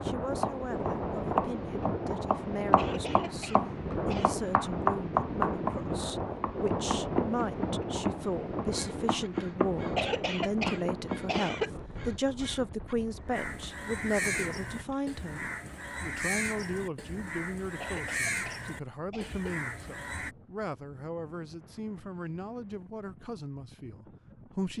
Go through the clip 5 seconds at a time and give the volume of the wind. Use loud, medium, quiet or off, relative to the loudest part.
loud, loud, medium, quiet, quiet.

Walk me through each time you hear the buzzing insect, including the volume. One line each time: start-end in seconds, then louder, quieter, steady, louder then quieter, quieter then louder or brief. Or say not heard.
not heard.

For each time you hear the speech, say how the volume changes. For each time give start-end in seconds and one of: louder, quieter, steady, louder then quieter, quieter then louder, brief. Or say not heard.
0.0-24.7 louder then quieter.